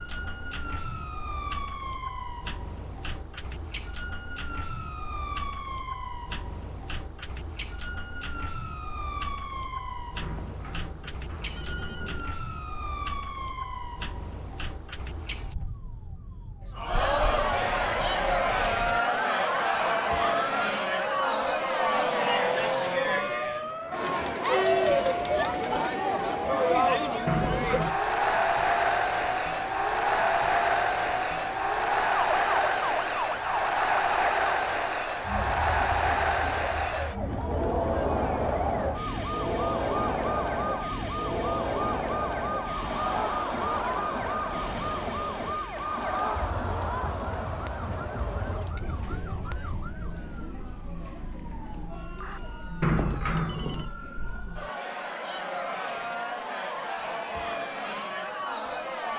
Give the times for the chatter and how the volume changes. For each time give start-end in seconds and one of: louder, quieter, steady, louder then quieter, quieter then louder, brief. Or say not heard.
16.8-59.1 quieter.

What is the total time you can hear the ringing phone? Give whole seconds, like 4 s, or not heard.
4 s.